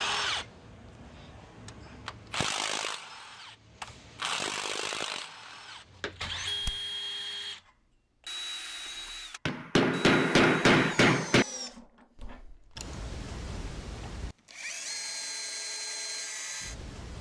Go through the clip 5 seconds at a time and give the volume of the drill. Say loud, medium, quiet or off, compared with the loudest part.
loud, loud, medium, loud.